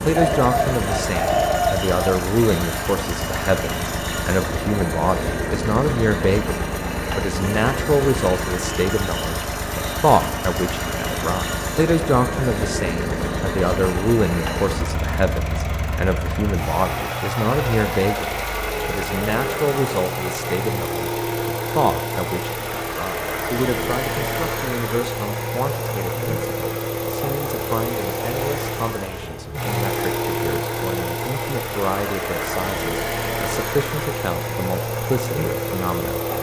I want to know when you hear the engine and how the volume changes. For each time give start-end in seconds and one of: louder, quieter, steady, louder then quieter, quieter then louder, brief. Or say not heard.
0.0-36.3 steady.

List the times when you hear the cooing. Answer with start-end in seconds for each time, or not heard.
0.1-2.1.